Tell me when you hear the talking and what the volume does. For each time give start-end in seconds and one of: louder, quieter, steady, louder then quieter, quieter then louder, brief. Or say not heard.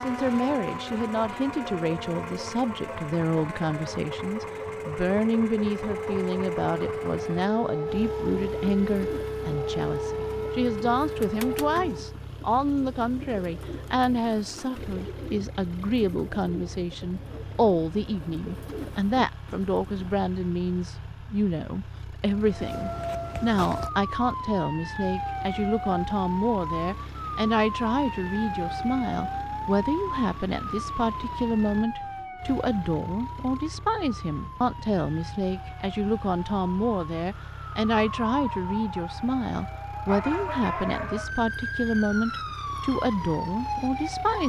0.0-44.4 steady.